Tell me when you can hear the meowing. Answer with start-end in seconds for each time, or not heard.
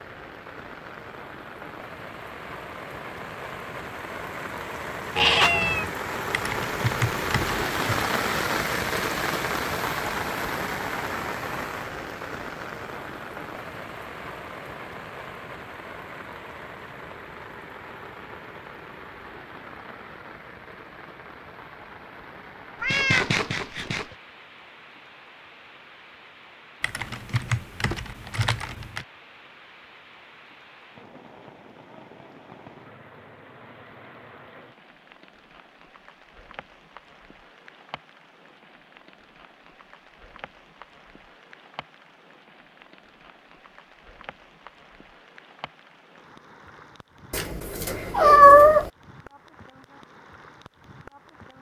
5.2-5.9, 22.8-24.1, 47.3-48.9.